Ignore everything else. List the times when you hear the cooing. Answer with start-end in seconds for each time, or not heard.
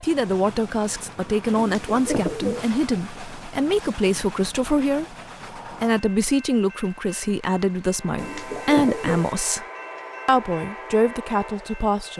1.6-2.7, 8.2-9.3.